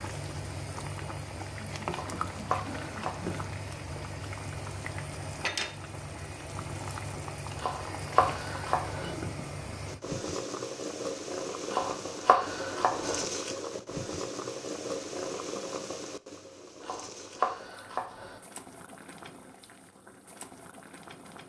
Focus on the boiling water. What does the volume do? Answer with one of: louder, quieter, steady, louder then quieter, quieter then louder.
quieter.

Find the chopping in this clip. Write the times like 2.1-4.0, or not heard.
1.9-3.4, 7.5-9.2, 11.7-13.2, 16.8-18.4.